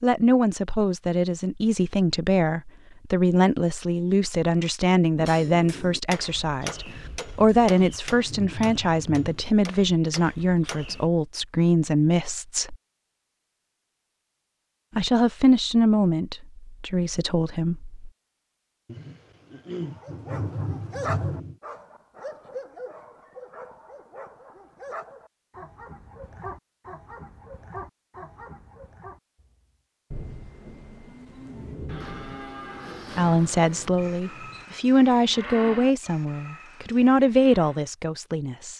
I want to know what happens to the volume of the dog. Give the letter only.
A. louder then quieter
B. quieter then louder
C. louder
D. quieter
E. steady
D.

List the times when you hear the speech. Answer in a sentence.
You can hear the speech from 0.0 to 12.8 s, from 14.9 to 18.1 s and from 33.1 to 38.7 s.